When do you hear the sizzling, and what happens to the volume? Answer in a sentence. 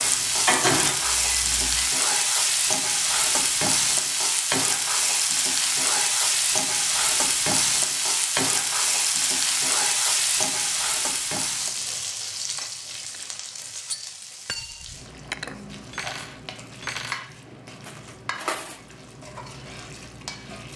The sizzling can be heard from 0.0 to 20.7 s, getting quieter.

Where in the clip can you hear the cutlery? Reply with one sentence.
You can hear the cutlery from 13.0 to 18.8 s.